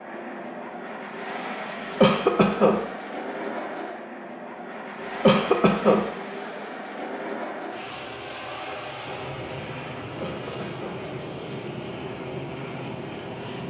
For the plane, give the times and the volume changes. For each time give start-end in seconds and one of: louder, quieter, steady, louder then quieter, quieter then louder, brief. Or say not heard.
0.0-13.6 steady.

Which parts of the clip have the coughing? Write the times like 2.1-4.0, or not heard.
2.0-2.8, 5.2-6.0, 10.2-11.0.